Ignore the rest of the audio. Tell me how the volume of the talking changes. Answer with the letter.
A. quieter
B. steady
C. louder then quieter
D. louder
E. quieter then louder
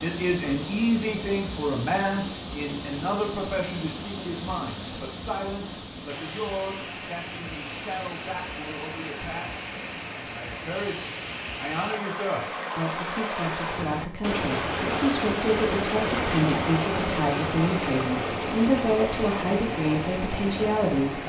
E.